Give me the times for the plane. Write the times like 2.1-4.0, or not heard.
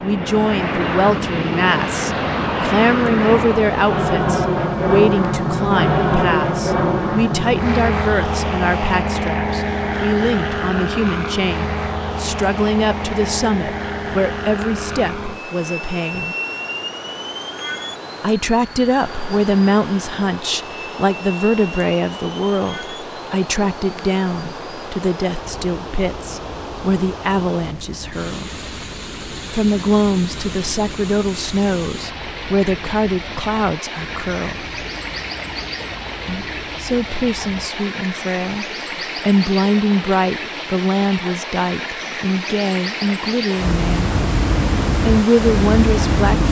0.0-37.8, 43.5-46.4.